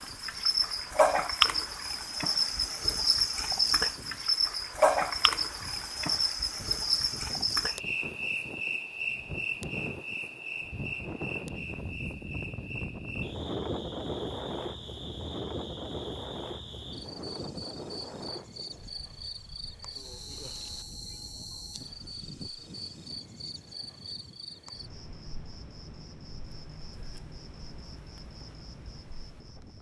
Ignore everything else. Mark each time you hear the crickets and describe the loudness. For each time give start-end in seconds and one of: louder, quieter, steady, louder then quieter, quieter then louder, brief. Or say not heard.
0.0-29.7 quieter.